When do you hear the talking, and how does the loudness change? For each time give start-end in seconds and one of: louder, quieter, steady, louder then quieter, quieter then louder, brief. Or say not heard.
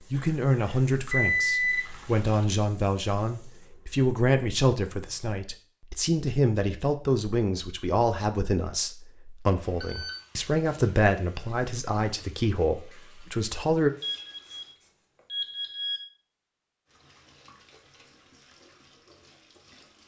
0.1-13.9 steady.